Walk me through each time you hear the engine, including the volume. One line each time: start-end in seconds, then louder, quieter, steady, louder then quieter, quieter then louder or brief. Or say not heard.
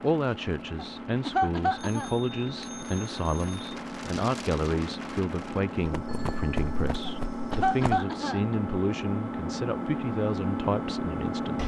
0.0-11.6 louder.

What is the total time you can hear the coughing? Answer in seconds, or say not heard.
3 s.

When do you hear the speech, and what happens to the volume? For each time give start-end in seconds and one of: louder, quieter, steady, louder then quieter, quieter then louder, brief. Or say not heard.
0.0-11.6 steady.